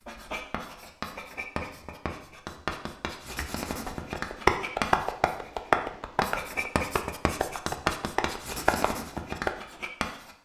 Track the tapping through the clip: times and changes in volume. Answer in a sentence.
The tapping can be heard from 3.4 to 9.5 s, getting quieter then louder.